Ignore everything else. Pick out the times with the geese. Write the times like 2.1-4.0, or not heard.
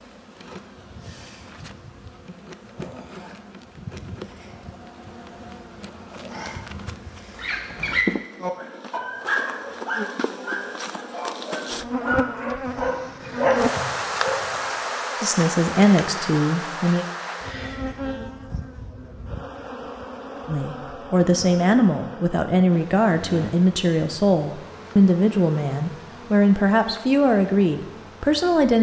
not heard.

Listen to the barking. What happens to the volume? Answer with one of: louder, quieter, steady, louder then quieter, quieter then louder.
quieter then louder.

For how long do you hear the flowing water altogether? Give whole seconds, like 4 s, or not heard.
not heard.